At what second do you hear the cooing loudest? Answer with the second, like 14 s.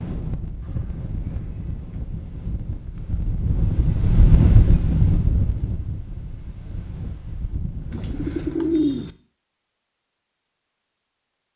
9 s.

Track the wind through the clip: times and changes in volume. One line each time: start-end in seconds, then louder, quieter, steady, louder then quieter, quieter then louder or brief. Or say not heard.
0.0-8.6 louder then quieter.